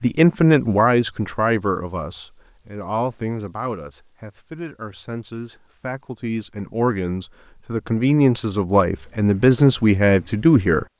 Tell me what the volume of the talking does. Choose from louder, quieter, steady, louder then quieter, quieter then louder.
quieter then louder.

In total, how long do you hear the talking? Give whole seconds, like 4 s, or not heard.
11 s.